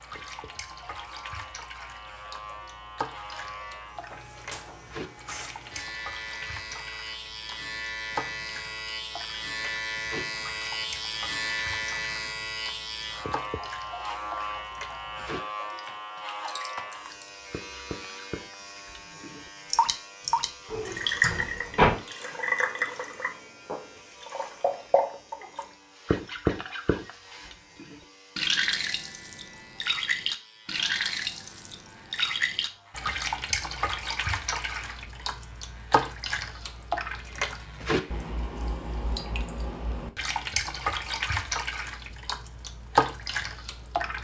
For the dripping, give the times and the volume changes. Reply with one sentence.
The dripping can be heard from 0.0 to 44.1 s, getting louder.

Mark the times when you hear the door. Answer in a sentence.
You can hear the door from 20.7 to 21.9 s.